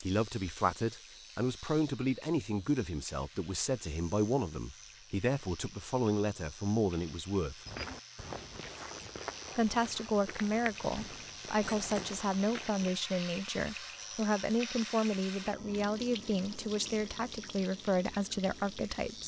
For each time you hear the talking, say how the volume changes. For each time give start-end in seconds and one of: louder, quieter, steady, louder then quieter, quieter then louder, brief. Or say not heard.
0.0-7.6 steady
9.6-19.2 steady.